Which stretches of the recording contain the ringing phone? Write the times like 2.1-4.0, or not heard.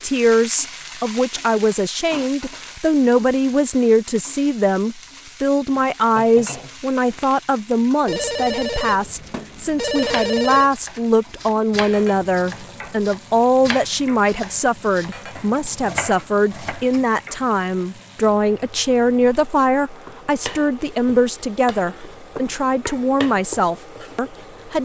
8.1-10.7.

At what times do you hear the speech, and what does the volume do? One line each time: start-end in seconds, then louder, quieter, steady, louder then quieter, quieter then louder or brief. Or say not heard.
0.0-24.8 steady.